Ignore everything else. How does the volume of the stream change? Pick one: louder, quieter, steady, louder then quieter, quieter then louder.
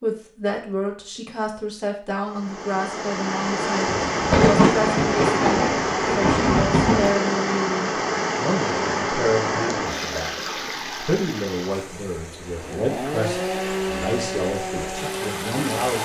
quieter.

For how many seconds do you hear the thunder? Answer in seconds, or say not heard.
3 s.